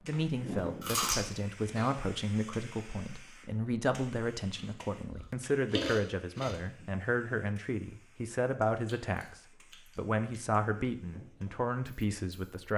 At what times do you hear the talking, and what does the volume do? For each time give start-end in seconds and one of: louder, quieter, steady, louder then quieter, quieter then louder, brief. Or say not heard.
0.0-12.7 steady.